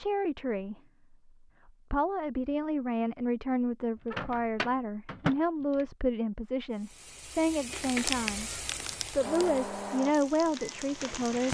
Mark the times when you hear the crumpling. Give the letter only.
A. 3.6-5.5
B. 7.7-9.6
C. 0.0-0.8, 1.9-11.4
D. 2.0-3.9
B.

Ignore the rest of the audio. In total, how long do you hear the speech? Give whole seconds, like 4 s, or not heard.
10 s.